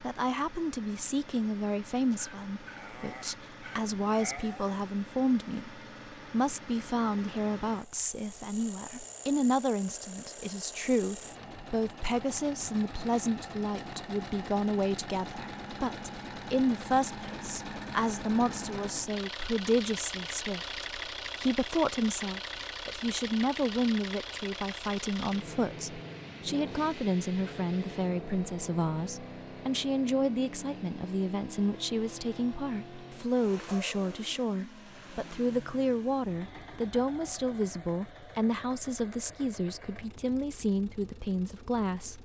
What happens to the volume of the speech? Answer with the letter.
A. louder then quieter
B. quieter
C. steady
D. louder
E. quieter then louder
C.